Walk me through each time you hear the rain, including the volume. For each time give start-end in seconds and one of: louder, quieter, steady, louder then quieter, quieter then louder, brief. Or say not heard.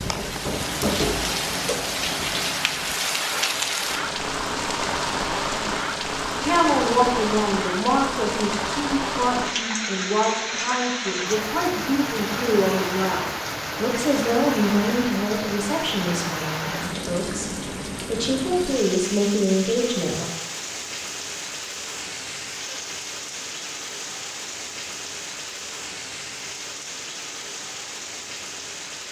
0.0-29.0 quieter.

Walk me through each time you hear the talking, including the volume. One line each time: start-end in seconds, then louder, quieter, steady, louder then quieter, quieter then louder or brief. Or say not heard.
6.4-20.2 steady.